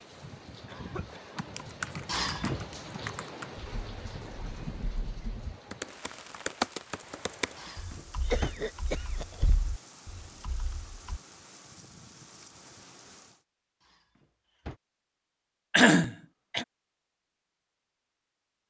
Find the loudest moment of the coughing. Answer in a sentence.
The loudest moment of the coughing is at 16 seconds.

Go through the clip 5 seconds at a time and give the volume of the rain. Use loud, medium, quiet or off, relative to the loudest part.
loud, medium, medium, off.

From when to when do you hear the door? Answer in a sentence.
You can hear the door from 2.0 to 2.7 s, from 7.5 to 8.5 s and from 13.8 to 14.8 s.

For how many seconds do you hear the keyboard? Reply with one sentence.
You can hear the keyboard for 10 seconds altogether.